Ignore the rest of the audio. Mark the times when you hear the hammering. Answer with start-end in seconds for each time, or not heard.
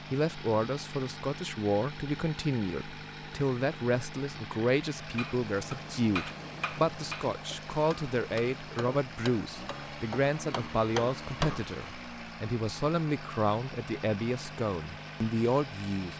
5.2-11.6.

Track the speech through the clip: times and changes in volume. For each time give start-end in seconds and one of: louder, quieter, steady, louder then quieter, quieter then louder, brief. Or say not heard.
0.0-16.1 steady.